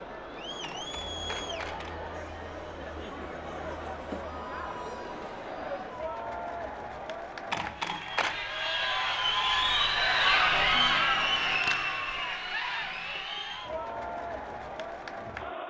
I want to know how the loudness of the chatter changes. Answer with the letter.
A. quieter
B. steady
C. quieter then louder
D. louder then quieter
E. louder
D.